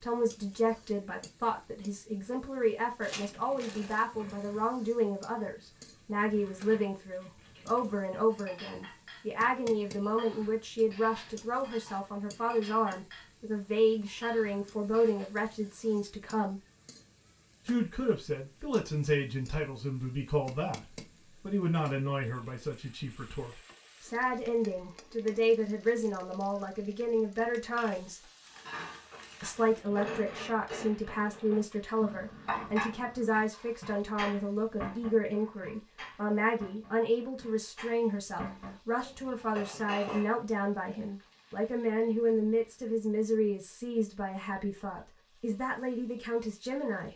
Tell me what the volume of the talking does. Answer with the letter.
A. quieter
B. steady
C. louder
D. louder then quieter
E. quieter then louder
B.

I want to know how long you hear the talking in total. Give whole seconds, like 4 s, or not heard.
45 s.